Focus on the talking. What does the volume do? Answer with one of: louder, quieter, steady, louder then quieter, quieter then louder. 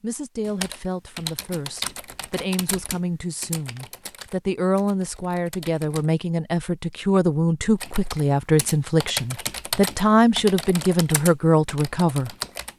louder.